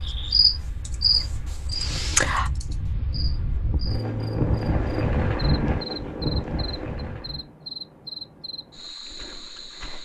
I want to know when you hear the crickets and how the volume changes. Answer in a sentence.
You can hear the crickets from 0.1 to 10.0 s, getting quieter.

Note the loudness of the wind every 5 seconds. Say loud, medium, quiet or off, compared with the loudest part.
medium, loud.